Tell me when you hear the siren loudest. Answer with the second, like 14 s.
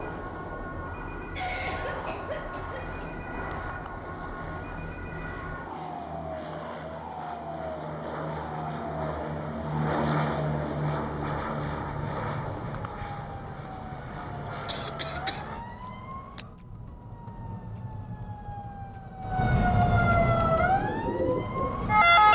22 s.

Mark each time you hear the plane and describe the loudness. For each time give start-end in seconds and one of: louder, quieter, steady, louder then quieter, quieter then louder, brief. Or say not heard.
0.0-15.7 louder then quieter.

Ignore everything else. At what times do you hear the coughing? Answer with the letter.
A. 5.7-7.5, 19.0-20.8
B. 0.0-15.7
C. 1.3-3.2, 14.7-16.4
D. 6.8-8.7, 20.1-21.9
C.